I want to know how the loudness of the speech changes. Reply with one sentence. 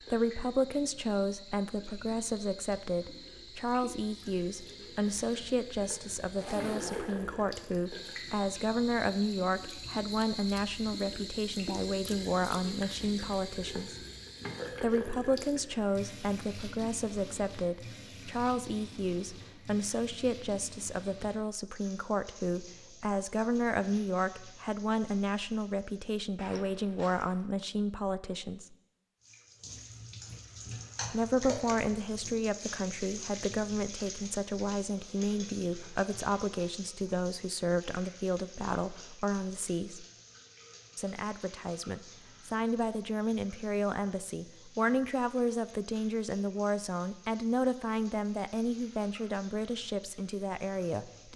The loudness of the speech stays about the same.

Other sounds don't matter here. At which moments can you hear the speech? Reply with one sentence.
You can hear the speech from 0.1 to 14.1 s, from 14.8 to 28.8 s, from 31.1 to 40.0 s and from 41.0 to 51.3 s.